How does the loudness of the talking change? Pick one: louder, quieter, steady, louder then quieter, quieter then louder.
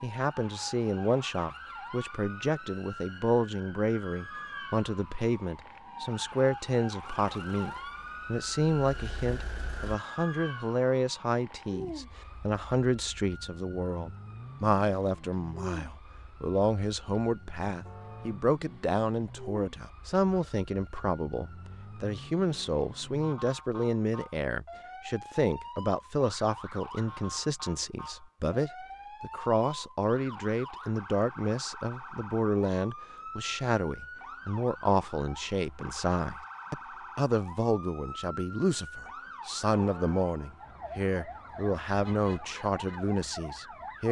steady.